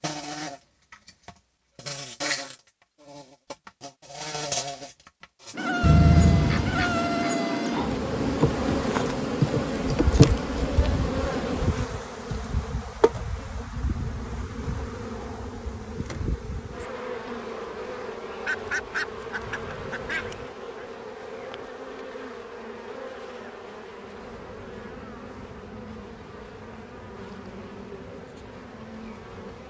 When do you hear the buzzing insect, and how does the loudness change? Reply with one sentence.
You can hear the buzzing insect from 0.0 to 29.6 s, getting louder then quieter.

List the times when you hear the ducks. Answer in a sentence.
You can hear the ducks from 5.8 to 7.3 s and from 18.4 to 20.4 s.